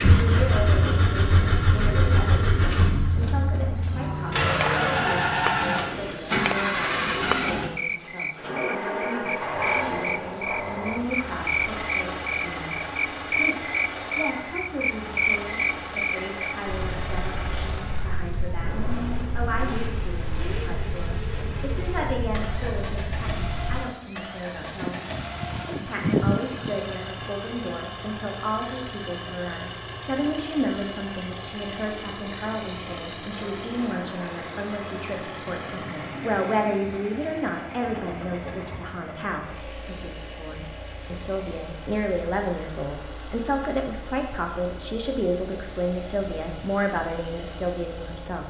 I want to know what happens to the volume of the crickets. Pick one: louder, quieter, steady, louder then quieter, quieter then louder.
louder.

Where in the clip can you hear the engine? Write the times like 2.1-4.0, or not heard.
0.0-48.4.